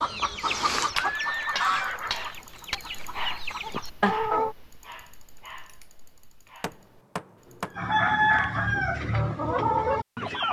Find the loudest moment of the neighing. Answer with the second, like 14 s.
1 s.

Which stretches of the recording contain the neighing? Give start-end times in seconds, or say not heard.
0.9-2.4, 6.7-8.1.